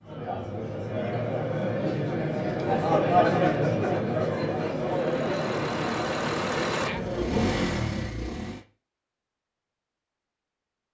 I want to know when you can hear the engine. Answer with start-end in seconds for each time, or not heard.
4.8-8.6.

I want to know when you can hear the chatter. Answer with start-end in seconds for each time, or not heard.
0.0-7.8.